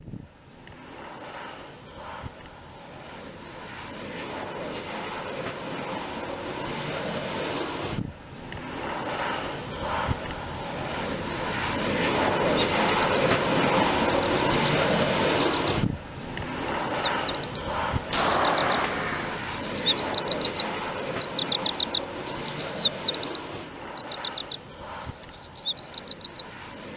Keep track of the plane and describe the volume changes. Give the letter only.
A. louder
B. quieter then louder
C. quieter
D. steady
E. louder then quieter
E.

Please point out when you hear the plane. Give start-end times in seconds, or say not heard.
0.0-26.9.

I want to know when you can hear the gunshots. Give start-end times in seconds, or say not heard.
18.1-19.4.